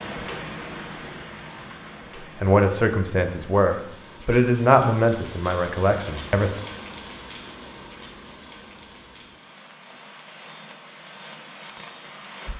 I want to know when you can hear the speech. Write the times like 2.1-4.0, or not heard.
2.2-6.6.